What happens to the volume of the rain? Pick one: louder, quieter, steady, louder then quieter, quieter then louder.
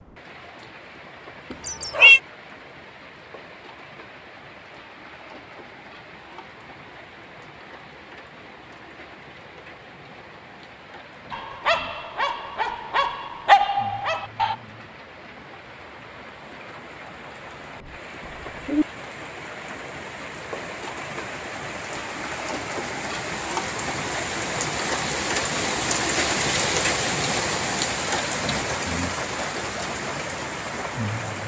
louder.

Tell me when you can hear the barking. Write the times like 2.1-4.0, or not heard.
11.3-14.6.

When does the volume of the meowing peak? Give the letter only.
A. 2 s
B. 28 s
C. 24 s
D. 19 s
A.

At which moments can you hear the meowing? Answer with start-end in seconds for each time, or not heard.
1.5-2.2, 18.2-18.9.